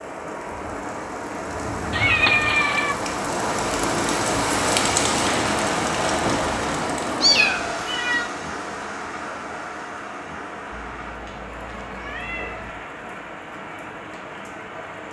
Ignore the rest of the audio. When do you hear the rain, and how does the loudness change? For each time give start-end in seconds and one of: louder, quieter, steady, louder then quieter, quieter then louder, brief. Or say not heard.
0.0-15.0 louder then quieter.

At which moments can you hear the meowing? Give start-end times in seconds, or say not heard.
1.9-3.0, 7.2-8.3, 10.7-12.8.